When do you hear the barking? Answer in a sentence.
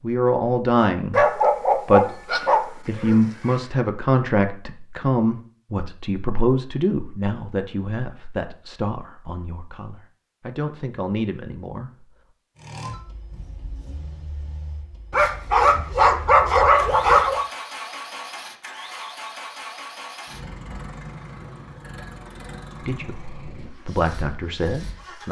The barking can be heard from 1.1 to 3.6 s and from 15.1 to 17.4 s.